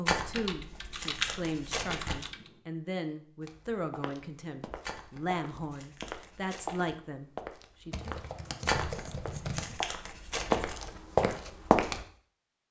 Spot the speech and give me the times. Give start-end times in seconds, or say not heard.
0.0-8.2.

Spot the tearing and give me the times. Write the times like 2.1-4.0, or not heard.
0.1-2.3, 4.8-6.9, 8.7-10.7.